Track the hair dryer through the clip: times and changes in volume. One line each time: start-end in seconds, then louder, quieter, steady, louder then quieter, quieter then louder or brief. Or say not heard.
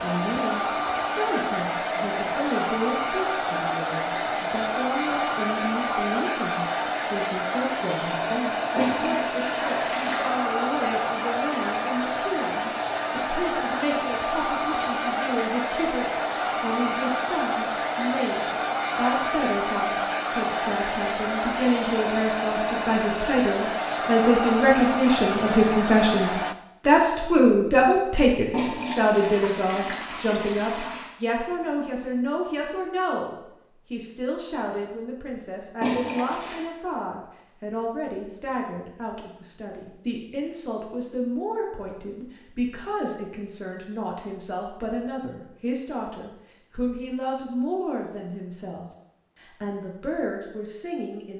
0.0-26.6 steady.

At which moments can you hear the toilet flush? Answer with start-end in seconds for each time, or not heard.
8.8-10.3, 28.5-31.1, 35.8-36.6.